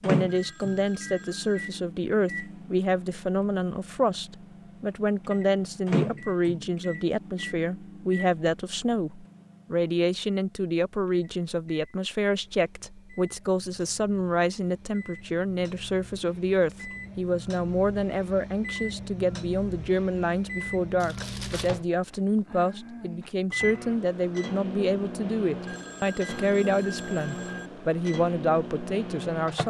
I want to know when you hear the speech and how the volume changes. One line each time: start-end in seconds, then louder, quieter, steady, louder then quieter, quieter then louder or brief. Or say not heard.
0.0-29.6 steady.